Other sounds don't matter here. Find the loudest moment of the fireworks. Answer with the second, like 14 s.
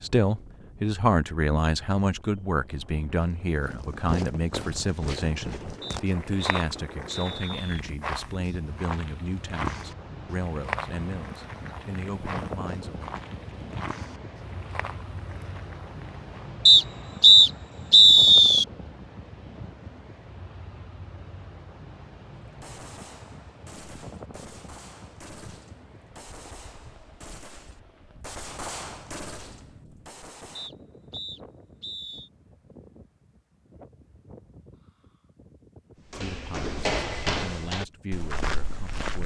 29 s.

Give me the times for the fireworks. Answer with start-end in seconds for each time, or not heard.
22.6-30.7.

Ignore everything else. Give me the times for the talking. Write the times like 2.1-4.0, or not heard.
0.0-13.1, 36.1-39.2.